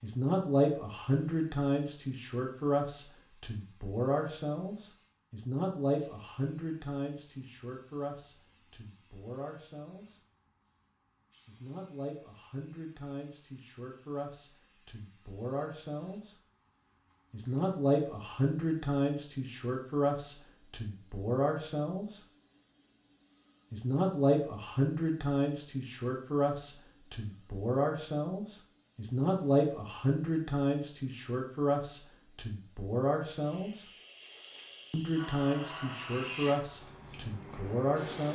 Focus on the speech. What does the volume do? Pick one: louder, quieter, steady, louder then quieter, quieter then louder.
quieter then louder.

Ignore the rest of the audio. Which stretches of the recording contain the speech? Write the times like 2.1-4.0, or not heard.
0.0-10.2, 11.4-16.4, 17.3-22.2, 23.7-33.9, 34.9-38.3.